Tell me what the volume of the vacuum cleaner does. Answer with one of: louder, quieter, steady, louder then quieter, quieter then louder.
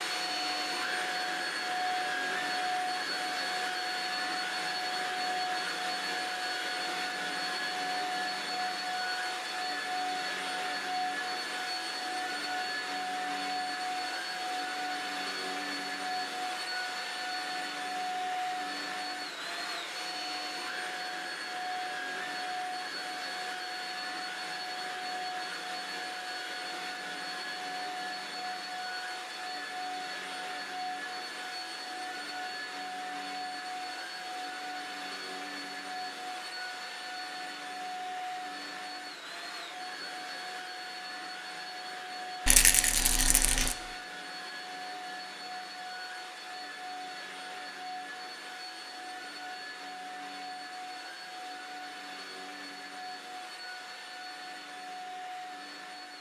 quieter.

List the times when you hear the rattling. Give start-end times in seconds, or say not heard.
42.5-43.8.